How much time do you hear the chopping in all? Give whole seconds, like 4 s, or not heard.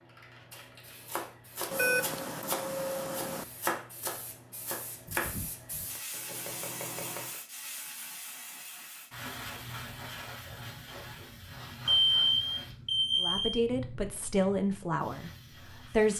7 s.